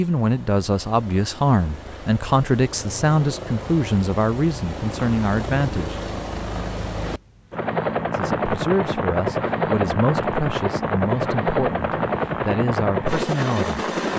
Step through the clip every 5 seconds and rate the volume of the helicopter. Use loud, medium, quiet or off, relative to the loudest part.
quiet, loud, loud.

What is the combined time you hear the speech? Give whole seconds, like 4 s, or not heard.
12 s.